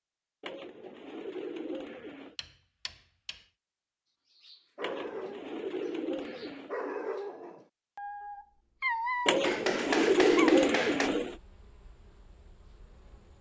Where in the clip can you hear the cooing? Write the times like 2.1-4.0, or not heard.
0.4-2.4, 4.8-6.8, 9.2-11.3.